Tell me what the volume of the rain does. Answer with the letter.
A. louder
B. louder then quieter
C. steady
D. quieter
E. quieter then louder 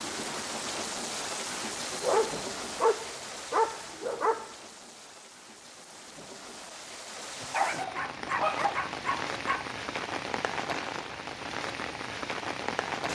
E.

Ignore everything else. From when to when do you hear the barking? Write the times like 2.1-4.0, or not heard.
1.9-4.5, 7.4-9.7.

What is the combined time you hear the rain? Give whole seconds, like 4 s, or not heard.
13 s.